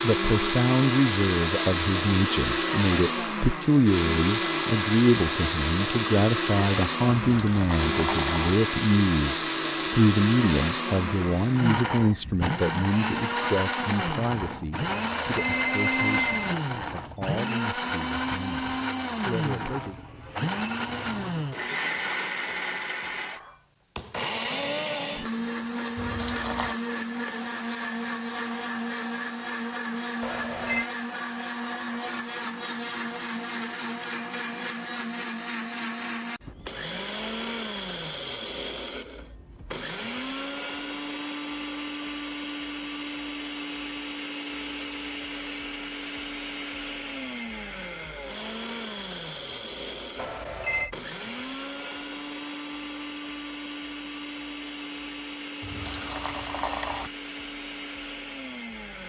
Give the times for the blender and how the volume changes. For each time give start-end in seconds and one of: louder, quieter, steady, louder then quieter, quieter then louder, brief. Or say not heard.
0.0-59.0 quieter.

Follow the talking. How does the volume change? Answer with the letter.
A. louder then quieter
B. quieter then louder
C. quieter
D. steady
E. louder
C.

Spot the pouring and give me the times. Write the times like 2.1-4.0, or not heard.
7.1-8.6, 25.9-26.8, 55.6-57.1.